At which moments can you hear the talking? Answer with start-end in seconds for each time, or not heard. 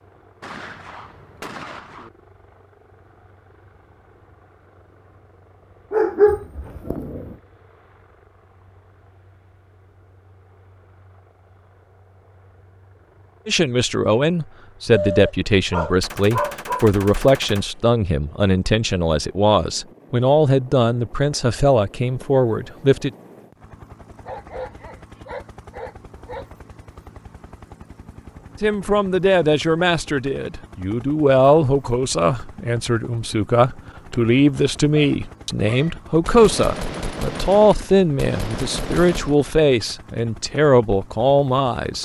13.4-23.1, 28.6-41.9.